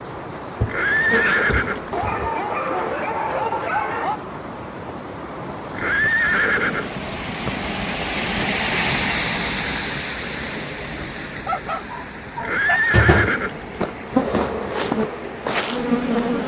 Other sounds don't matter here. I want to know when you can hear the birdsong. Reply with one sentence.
The birdsong can't be heard in this clip.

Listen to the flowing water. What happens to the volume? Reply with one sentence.
The volume of the flowing water goes up, then down.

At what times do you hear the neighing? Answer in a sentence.
The neighing can be heard from 0.7 to 2.1 s, from 5.7 to 7.0 s and from 12.4 to 13.8 s.